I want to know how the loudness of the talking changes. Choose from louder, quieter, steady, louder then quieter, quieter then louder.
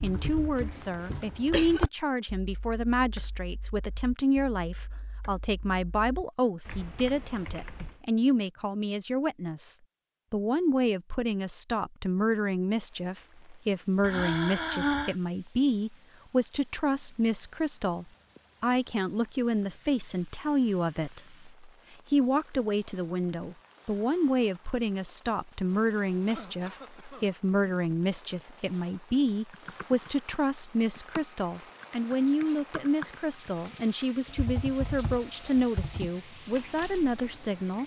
steady.